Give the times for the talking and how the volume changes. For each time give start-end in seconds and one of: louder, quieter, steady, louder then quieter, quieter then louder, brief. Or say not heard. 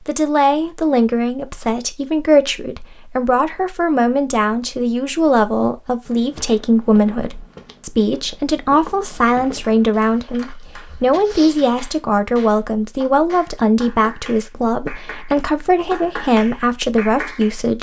0.1-17.7 steady.